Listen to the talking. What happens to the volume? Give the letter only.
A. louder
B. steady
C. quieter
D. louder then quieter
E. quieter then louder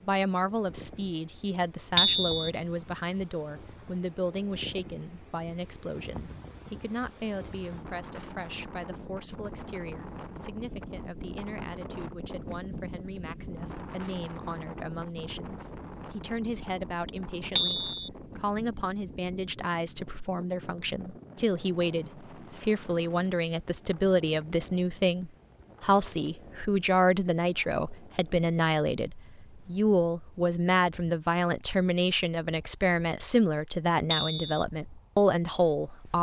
E.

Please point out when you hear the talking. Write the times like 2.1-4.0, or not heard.
0.0-36.1.